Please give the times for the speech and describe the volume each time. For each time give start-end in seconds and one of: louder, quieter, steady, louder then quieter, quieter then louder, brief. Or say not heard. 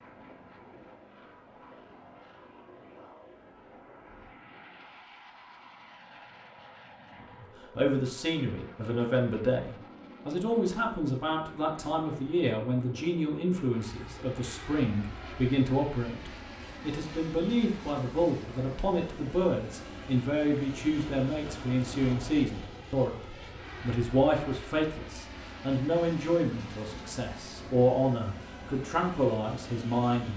7.4-30.3 steady.